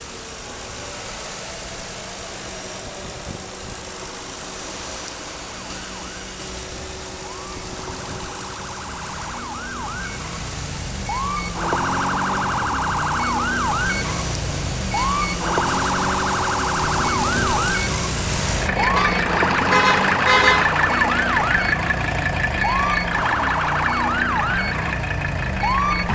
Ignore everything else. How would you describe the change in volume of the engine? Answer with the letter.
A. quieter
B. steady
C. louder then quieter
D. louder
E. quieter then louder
D.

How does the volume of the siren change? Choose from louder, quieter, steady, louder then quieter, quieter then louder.
louder.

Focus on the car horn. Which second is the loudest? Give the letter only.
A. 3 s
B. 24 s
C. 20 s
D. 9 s
C.